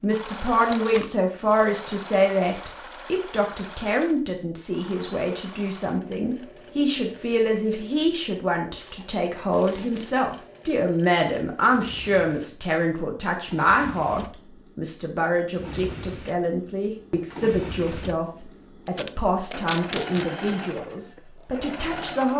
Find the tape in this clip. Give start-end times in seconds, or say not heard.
0.7-1.1, 8.7-10.2, 18.9-20.2.